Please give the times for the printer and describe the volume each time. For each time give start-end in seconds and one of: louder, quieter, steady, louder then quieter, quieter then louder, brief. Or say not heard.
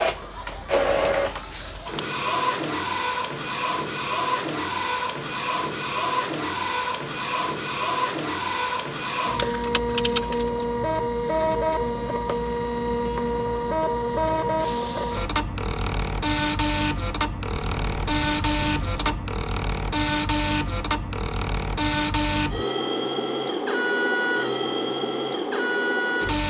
0.0-26.4 steady.